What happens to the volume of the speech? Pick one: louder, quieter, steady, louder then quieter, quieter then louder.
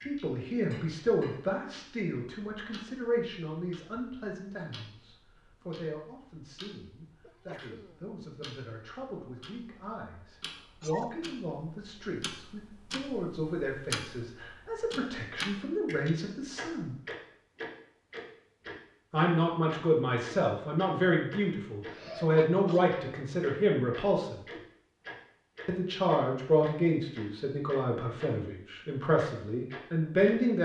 quieter then louder.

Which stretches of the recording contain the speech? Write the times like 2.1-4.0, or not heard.
0.1-16.9, 19.1-24.4, 25.6-30.5.